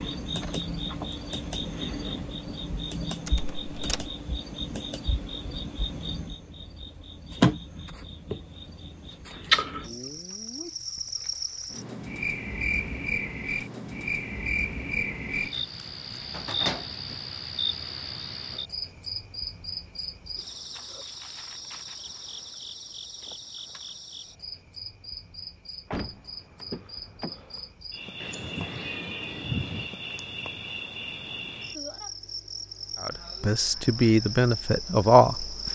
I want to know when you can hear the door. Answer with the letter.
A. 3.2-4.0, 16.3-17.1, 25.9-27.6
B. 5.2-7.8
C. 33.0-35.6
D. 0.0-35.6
A.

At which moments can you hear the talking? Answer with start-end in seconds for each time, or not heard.
33.0-35.6.